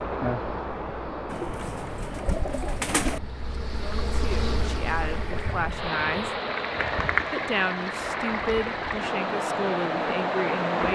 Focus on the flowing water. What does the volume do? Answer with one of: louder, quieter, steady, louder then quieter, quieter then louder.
quieter then louder.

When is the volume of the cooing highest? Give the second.
3 s.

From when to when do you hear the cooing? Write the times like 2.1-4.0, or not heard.
1.2-3.2.